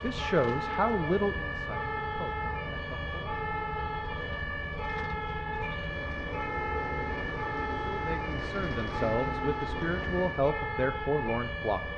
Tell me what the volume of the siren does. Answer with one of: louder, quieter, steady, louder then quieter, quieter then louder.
steady.